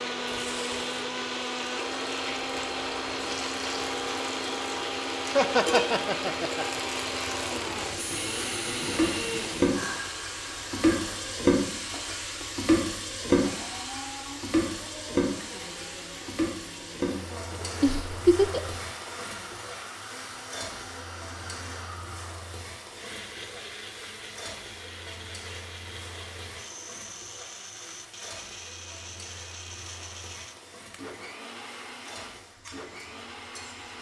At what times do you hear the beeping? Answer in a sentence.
The beeping can't be heard in this clip.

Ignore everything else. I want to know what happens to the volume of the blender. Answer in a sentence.
The loudness of the blender goes down.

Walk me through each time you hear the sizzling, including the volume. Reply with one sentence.
You can hear the sizzling from 0.2 to 33.9 s, getting louder then quieter.